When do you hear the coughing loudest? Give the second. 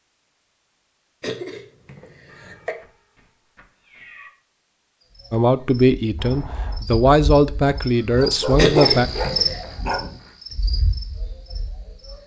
9 s.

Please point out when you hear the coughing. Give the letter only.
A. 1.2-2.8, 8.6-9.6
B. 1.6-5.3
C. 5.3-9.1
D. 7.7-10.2
A.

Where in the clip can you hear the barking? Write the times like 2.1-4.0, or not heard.
7.7-10.2.